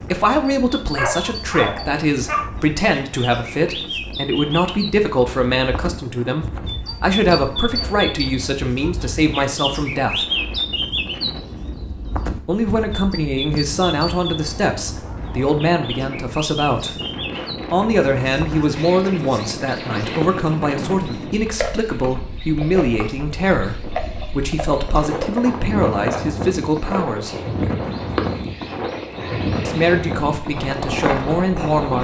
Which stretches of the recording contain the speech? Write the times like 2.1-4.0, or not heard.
0.0-10.2, 12.4-17.0, 17.7-27.4, 29.6-31.9.